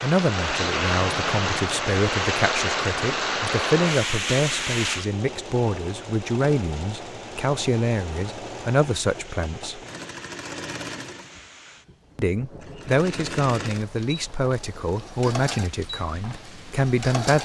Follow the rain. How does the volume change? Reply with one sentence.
The volume of the rain goes down.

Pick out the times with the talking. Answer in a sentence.
The talking can be heard from 0.0 to 9.8 s and from 12.2 to 17.3 s.